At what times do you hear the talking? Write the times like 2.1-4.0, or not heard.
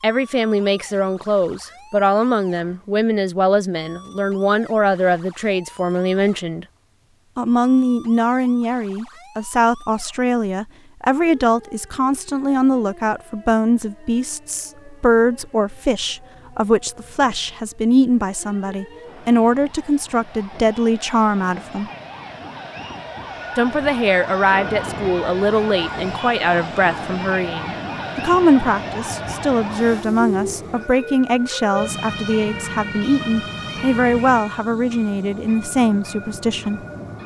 0.0-6.7, 7.3-21.9, 23.6-36.8.